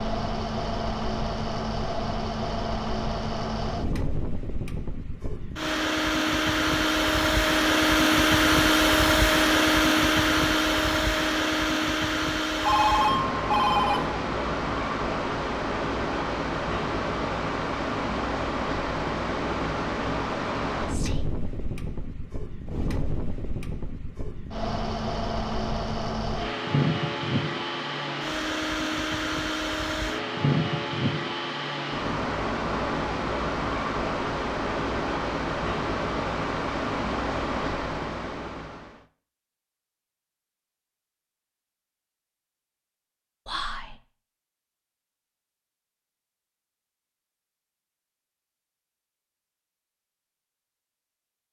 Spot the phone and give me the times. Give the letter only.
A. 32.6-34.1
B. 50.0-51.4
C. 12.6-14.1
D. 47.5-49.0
C.